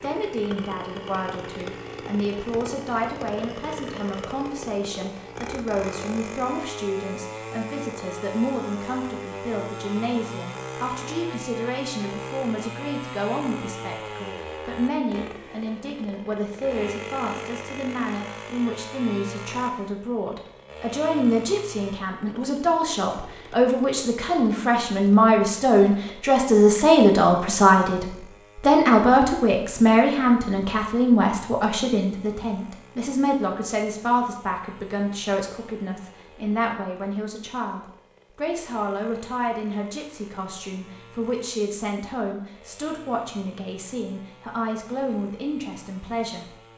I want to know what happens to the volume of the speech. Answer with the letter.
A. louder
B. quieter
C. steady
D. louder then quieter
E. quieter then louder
D.